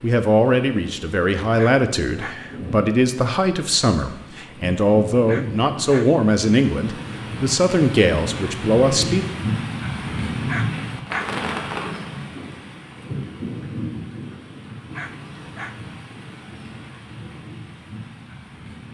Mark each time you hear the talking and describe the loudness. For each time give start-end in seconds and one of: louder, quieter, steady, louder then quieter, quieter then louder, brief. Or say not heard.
0.0-9.2 steady.